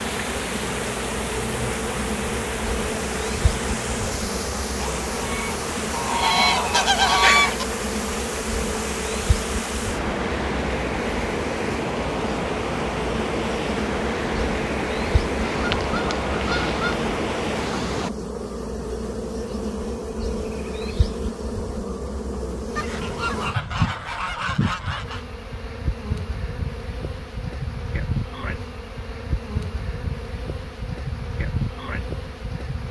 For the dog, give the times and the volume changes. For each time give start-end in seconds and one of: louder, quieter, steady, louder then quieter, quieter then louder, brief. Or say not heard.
not heard.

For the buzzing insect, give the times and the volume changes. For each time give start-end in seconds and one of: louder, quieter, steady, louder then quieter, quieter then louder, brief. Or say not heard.
0.0-32.8 steady.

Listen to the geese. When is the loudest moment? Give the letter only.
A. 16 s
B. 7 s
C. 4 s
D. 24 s
B.